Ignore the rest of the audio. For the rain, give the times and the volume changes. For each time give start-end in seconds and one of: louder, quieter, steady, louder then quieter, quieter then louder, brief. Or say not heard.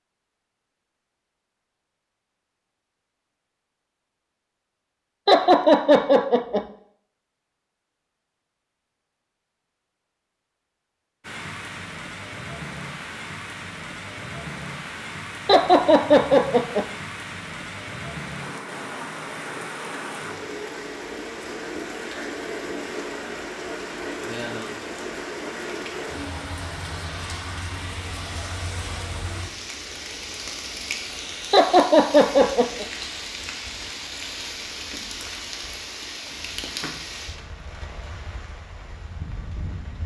11.2-40.0 steady.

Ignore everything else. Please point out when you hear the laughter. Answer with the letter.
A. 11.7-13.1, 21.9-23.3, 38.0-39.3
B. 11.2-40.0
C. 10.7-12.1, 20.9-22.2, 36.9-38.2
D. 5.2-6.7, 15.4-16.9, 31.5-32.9
D.